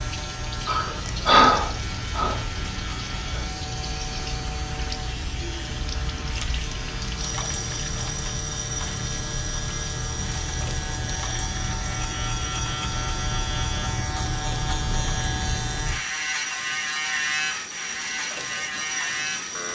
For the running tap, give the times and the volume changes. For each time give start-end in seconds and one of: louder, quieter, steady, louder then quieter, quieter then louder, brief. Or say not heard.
0.0-19.6 steady.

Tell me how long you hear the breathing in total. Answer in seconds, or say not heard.
3 s.